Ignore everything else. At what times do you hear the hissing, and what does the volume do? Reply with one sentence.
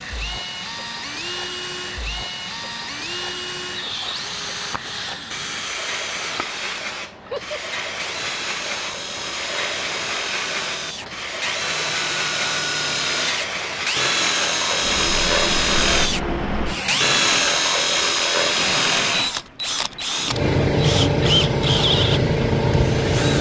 The hissing can be heard from 0.0 to 23.3 s, getting louder.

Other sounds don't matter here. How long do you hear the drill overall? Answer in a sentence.
The drill can be heard for 23 seconds in total.